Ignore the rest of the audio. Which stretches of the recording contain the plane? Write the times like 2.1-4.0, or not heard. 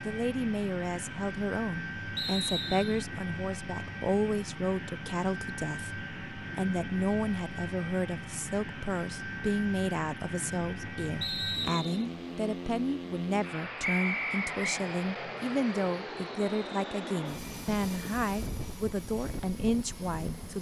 0.0-20.5.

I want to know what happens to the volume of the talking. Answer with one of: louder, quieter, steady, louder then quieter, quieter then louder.
steady.